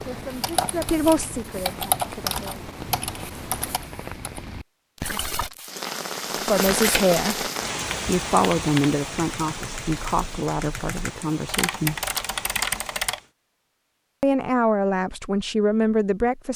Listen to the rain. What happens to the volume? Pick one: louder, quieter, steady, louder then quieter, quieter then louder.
louder then quieter.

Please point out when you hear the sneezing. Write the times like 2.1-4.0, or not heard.
not heard.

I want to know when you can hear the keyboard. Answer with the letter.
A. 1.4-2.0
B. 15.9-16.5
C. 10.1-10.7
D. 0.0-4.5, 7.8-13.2
D.